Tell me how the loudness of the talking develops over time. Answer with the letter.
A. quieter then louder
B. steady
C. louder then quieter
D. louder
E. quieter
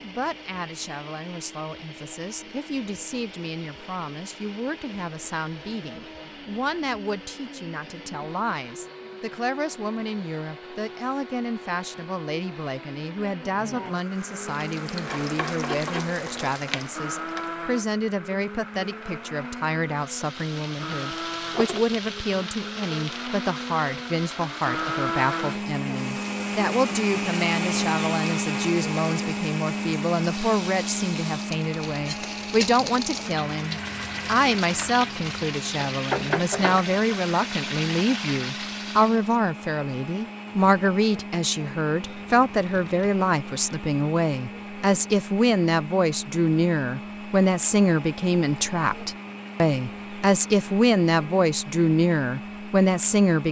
D.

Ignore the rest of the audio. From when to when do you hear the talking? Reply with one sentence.
You can hear the talking from 0.0 to 53.4 s.